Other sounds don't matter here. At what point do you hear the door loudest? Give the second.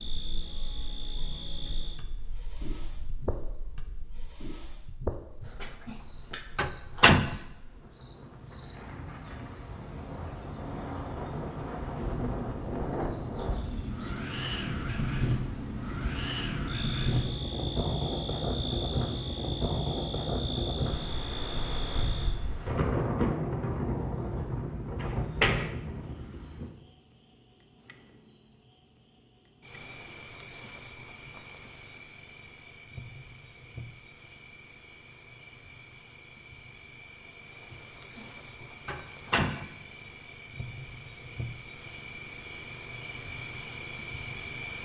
7 s.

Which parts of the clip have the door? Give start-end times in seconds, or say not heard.
5.4-6.0, 6.5-7.3, 24.9-25.8, 37.7-38.2, 38.9-39.6.